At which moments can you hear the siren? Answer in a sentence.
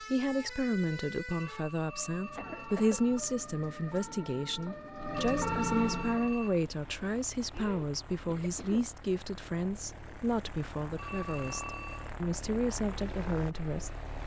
You can hear the siren from 0.0 to 6.3 s.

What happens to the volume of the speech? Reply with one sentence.
The loudness of the speech stays about the same.